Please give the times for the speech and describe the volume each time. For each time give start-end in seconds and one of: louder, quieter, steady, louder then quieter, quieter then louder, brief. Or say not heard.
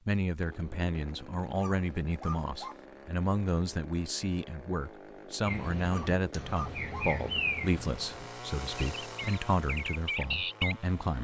0.1-11.1 steady.